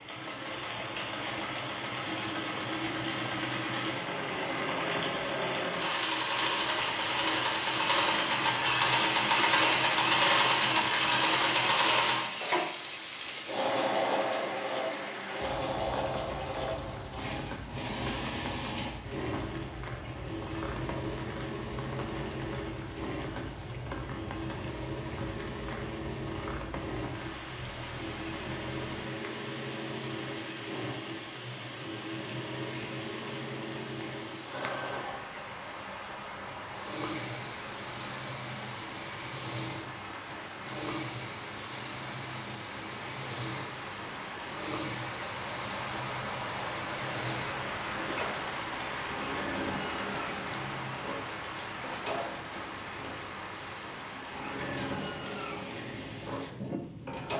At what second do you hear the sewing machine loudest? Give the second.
10 s.